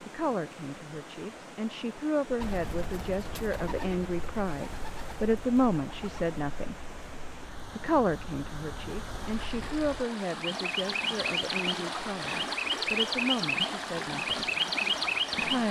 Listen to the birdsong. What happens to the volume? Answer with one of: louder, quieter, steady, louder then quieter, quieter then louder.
quieter then louder.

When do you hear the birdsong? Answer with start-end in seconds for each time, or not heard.
2.4-15.6.